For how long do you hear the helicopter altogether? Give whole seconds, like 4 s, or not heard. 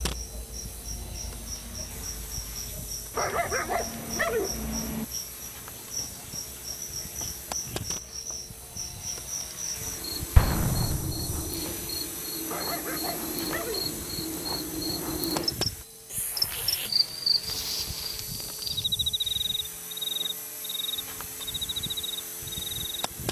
23 s.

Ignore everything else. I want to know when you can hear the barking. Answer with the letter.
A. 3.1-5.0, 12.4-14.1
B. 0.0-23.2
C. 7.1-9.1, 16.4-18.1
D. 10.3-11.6
A.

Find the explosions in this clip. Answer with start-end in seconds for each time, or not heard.
10.3-11.6.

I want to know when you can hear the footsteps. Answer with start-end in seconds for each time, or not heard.
not heard.